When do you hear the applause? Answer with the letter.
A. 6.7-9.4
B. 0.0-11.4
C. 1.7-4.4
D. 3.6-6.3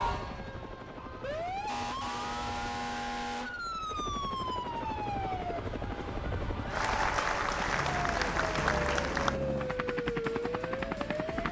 A.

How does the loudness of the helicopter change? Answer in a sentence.
The volume of the helicopter goes up.